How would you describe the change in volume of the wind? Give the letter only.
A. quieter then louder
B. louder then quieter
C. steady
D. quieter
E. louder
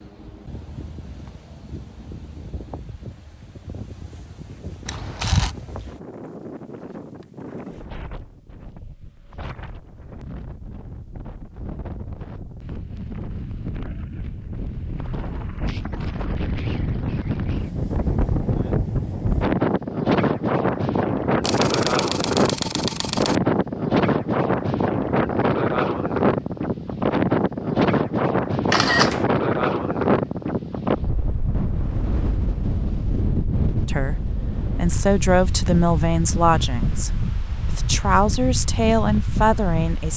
B.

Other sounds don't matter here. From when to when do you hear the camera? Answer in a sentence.
The camera can be heard from 4.8 to 5.5 s, from 21.4 to 23.4 s and from 28.6 to 29.2 s.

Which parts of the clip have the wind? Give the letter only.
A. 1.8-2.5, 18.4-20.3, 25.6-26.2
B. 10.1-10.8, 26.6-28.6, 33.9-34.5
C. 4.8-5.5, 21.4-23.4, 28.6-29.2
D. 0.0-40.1
D.